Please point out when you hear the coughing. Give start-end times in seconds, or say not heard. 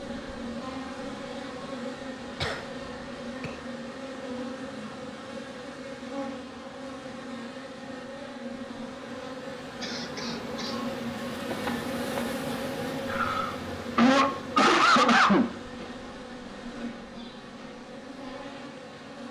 2.4-3.6, 9.8-10.8, 13.1-15.4.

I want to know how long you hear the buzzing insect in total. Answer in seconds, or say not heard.
19 s.